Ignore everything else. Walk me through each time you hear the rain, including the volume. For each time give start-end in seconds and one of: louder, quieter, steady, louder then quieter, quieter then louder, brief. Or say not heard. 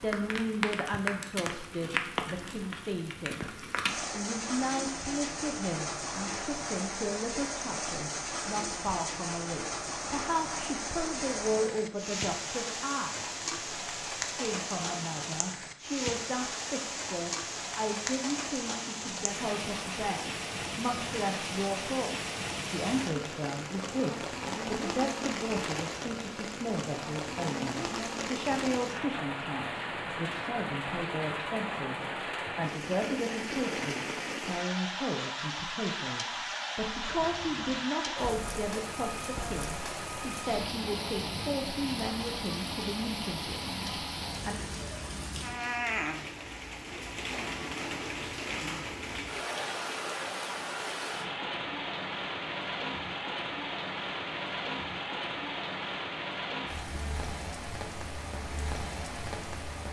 0.0-59.8 steady.